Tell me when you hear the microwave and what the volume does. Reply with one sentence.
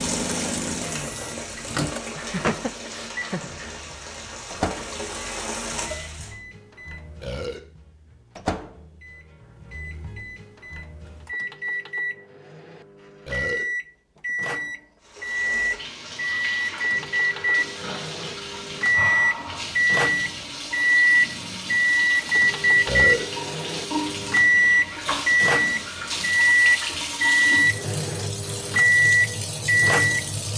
The microwave can be heard from 0.0 to 30.2 s, getting louder.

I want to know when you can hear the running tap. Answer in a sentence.
The running tap can be heard from 0.0 to 6.3 s and from 15.0 to 30.5 s.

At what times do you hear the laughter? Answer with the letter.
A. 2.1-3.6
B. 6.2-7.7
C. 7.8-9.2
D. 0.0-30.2
A.